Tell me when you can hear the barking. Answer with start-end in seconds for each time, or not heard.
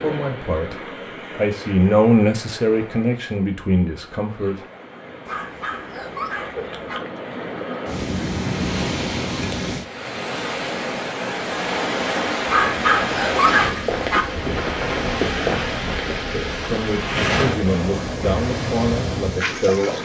5.2-7.0, 12.4-14.2.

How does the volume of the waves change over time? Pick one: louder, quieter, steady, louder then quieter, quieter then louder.
louder.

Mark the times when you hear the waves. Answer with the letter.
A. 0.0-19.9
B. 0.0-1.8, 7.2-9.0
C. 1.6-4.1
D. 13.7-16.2
A.